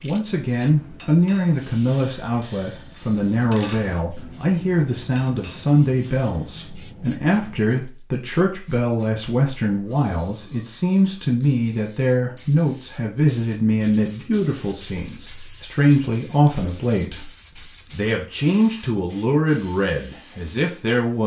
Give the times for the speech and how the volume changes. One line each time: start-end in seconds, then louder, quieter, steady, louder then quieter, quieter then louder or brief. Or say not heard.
0.0-21.2 steady.